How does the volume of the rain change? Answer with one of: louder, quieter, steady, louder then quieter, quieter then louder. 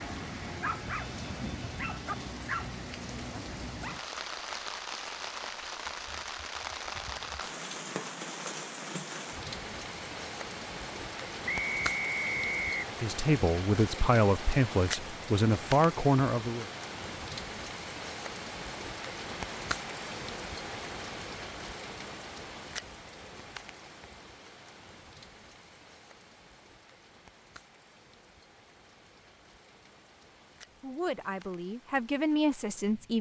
quieter.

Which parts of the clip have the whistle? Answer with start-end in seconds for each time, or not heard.
11.4-12.9.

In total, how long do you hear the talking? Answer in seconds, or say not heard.
6 s.